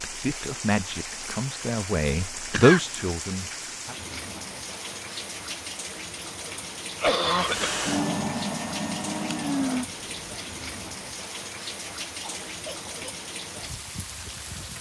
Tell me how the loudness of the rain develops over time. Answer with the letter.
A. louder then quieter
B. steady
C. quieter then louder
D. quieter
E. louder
B.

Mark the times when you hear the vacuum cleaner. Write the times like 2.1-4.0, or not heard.
7.3-10.7.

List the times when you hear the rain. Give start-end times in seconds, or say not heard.
0.0-14.7.